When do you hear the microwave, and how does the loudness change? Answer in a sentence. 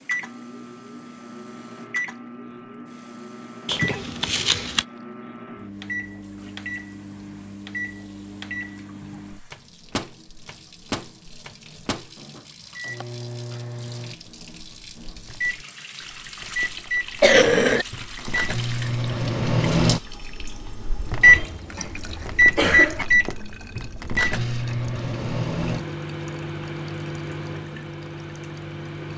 You can hear the microwave from 0.0 to 29.1 s, getting louder then quieter.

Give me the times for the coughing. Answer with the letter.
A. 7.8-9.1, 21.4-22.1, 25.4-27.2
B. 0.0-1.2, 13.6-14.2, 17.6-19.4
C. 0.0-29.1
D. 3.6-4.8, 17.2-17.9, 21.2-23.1
D.